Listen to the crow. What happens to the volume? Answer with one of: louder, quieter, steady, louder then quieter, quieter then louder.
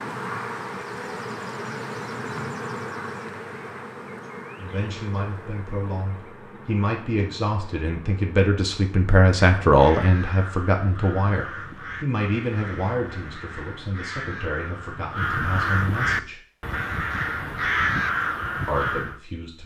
louder.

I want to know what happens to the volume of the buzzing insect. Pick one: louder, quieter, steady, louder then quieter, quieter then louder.
quieter.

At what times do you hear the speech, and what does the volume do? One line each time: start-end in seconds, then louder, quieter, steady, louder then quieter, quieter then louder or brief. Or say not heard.
4.5-16.4 louder then quieter
18.6-19.6 brief.